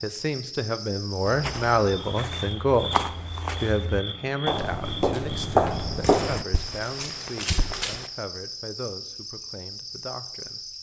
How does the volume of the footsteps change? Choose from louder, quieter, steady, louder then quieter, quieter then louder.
louder then quieter.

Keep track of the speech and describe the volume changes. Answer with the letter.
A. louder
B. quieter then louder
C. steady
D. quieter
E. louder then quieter
D.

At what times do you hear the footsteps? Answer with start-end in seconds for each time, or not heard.
1.2-8.1.